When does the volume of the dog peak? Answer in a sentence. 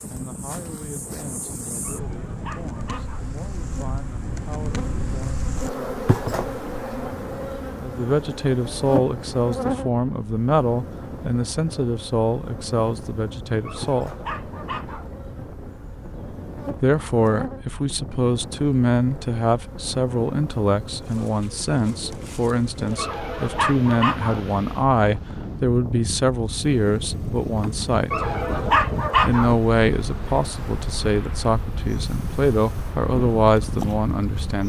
The loudest moment of the dog is at 29 seconds.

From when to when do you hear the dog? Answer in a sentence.
You can hear the dog from 1.9 to 3.3 s, from 13.7 to 15.1 s, from 22.9 to 24.4 s and from 28.1 to 29.6 s.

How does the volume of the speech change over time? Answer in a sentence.
The volume of the speech goes up.